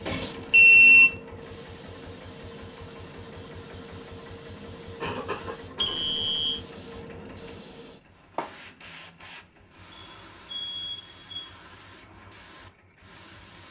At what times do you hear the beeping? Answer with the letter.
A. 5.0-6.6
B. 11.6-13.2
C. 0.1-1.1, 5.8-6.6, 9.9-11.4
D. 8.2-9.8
C.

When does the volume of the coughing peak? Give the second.
5 s.